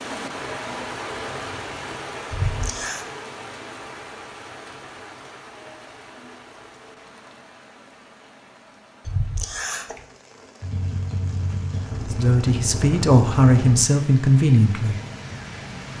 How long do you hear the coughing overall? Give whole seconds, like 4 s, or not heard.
2 s.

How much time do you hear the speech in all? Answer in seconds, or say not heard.
3 s.